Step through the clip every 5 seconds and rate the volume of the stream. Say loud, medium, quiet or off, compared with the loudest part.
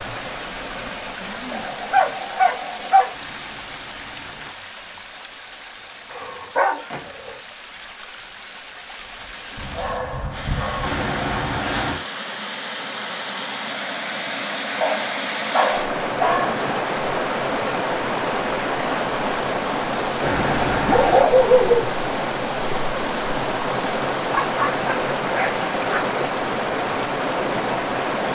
medium, quiet, medium, loud, loud, loud.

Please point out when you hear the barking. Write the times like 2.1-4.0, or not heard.
1.5-3.1, 6.1-7.4, 9.6-11.6, 14.8-16.6, 20.9-21.8, 24.3-26.0.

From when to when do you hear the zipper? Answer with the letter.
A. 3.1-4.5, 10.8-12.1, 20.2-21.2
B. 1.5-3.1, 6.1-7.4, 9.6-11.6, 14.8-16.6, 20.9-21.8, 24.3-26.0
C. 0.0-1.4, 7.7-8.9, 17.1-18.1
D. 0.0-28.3
A.